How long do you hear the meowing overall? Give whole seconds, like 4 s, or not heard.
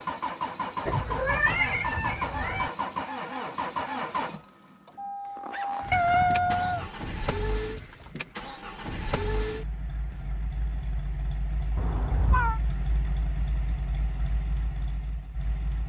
4 s.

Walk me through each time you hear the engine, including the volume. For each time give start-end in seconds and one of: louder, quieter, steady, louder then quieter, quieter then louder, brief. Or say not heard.
0.0-15.8 quieter.